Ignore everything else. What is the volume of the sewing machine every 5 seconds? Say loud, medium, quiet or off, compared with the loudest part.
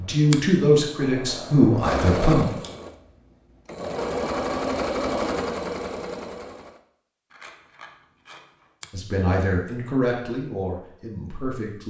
loud, loud, off.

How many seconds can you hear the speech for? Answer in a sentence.
The speech can be heard for 5 seconds in total.